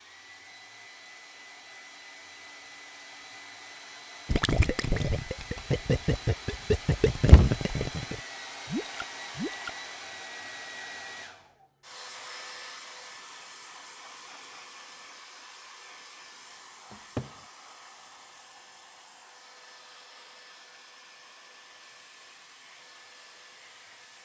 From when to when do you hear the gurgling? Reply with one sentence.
You can hear the gurgling from 4.2 to 9.8 s.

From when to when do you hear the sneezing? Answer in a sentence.
The sneezing can't be heard in this clip.